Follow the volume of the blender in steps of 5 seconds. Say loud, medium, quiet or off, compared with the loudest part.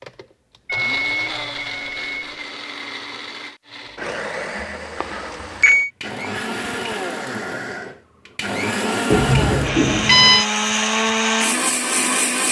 medium, medium, loud.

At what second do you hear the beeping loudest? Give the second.
10 s.